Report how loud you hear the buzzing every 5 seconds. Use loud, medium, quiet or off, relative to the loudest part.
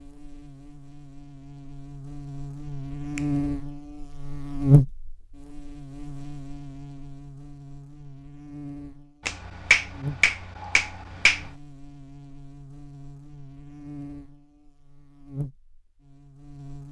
loud, quiet, quiet, quiet.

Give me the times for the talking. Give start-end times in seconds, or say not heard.
not heard.